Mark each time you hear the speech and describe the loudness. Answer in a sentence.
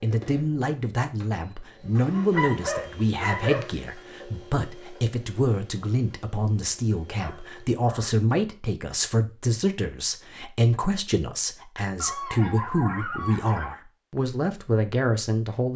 You can hear the speech from 0.0 to 15.7 s, at a steady volume.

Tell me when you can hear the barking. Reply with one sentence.
You can hear the barking from 1.9 to 3.8 s, from 7.2 to 8.1 s and from 11.9 to 13.8 s.